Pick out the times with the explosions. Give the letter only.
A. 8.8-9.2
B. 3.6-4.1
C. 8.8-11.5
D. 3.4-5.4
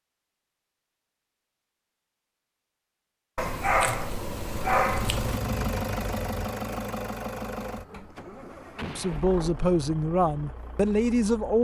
A.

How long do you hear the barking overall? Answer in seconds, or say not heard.
2 s.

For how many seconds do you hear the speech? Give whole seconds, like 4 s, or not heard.
3 s.